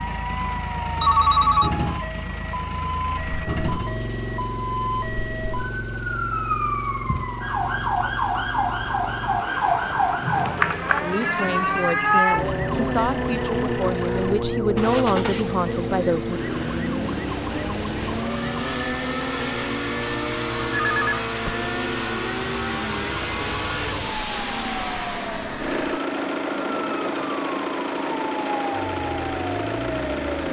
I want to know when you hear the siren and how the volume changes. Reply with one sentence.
You can hear the siren from 0.0 to 30.4 s, getting louder then quieter.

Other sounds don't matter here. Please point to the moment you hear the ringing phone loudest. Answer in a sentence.
The loudest moment of the ringing phone is at 1 second.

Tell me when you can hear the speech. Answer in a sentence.
The speech can be heard from 11.0 to 16.4 s.